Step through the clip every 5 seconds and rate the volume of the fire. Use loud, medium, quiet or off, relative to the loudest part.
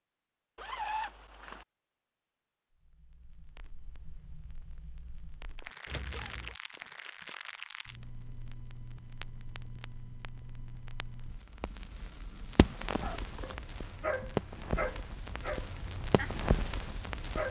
quiet, medium, loud, loud.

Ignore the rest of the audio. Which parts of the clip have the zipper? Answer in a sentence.
You can hear the zipper from 0.6 to 1.6 s, from 5.8 to 6.5 s and from 13.2 to 13.7 s.